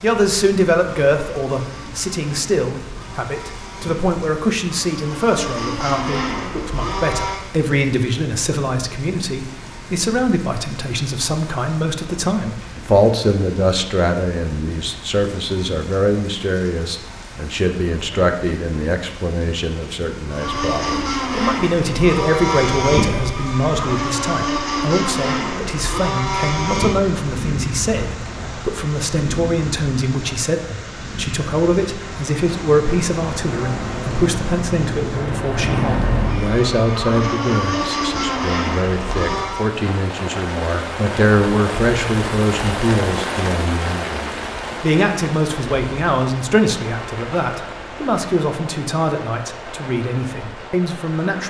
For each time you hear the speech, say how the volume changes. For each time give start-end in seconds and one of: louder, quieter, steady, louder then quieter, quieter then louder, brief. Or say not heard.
0.0-51.4 steady.